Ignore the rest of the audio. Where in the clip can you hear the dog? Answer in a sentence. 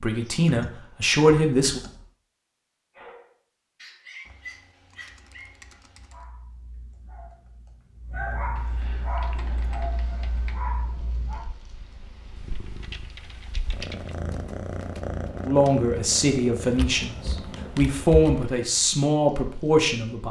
You can hear the dog from 2.9 to 11.4 s.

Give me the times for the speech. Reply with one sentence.
You can hear the speech from 0.0 to 1.8 s and from 15.4 to 20.2 s.